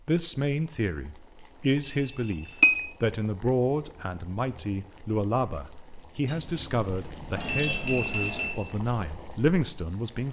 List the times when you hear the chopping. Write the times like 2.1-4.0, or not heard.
not heard.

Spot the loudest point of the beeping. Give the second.
8 s.